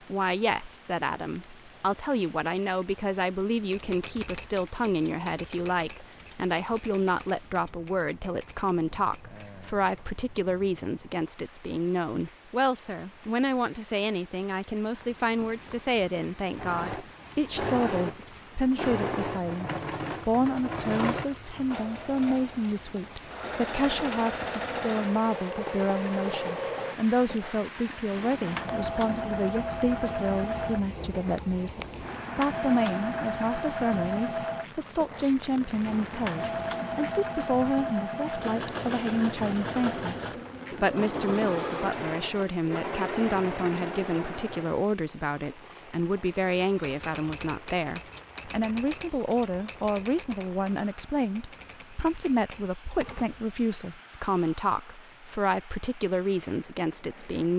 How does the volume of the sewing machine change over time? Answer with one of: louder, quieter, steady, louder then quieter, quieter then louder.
steady.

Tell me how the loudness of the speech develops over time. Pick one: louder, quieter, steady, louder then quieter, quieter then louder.
steady.